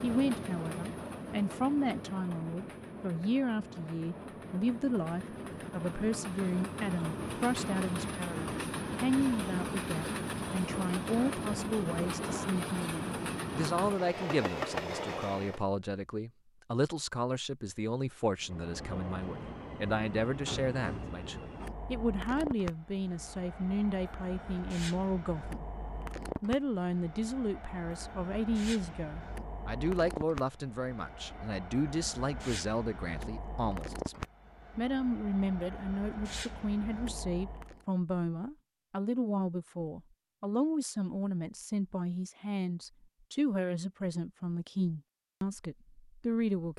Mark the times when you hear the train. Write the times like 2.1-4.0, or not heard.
0.0-15.7, 18.4-37.9.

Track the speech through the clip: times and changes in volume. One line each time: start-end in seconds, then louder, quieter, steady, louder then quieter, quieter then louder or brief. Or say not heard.
0.0-25.8 steady
26.4-46.7 steady.